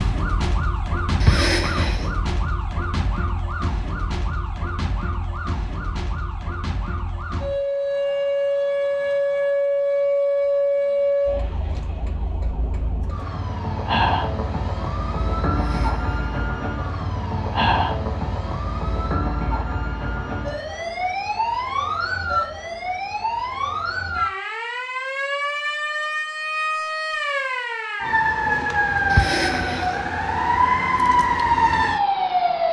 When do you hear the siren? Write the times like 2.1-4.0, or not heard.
0.0-32.6.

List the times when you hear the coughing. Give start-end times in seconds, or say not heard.
1.2-2.0, 15.5-16.2, 29.1-30.2.